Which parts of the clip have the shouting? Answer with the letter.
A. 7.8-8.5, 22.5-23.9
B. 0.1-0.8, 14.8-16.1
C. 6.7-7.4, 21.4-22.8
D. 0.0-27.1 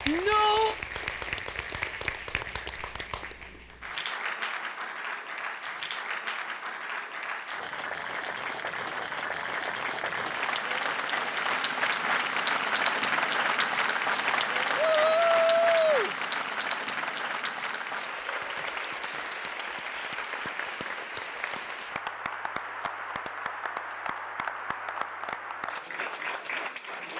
B.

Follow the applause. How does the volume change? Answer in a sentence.
The loudness of the applause goes up, then down.